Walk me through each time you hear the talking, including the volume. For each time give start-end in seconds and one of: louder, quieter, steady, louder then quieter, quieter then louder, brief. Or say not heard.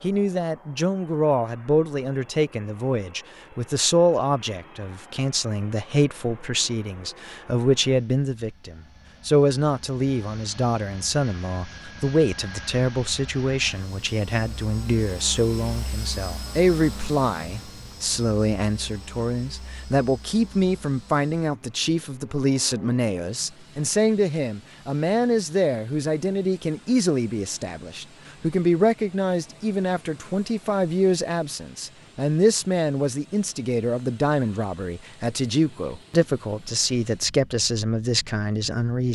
0.0-39.1 steady.